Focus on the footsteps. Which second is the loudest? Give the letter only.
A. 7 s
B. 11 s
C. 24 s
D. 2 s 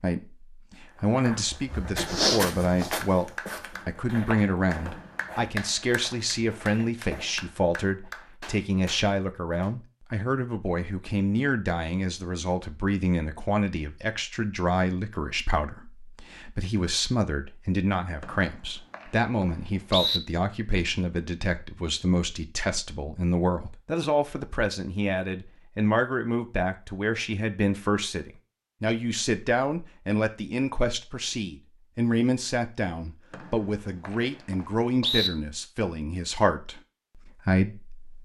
D.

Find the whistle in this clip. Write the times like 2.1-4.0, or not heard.
4.8-6.2, 18.2-20.2, 33.3-35.3.